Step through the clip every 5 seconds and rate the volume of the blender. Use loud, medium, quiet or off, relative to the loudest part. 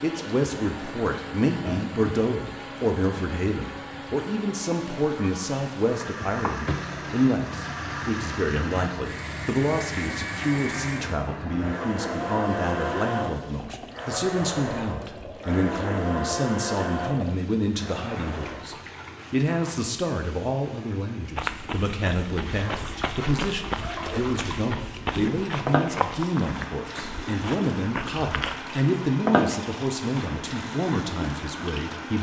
medium, medium, loud, loud, off, off, off.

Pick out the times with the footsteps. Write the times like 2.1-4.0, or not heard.
21.4-28.8.